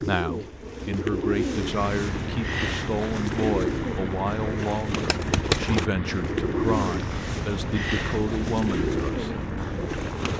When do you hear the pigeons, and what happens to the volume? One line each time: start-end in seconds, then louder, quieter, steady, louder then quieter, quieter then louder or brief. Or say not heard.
0.0-10.3 steady.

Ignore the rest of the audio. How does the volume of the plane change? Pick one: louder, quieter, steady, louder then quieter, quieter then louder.
steady.